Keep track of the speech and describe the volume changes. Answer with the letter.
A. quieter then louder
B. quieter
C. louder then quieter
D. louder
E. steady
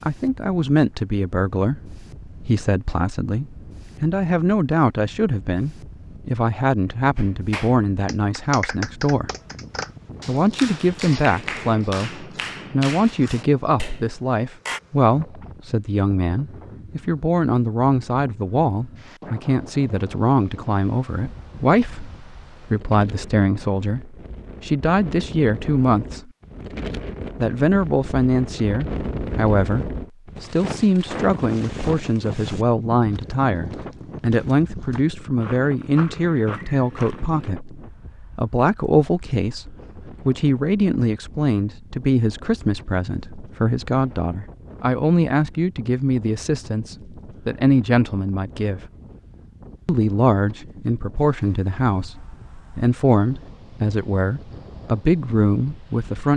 E.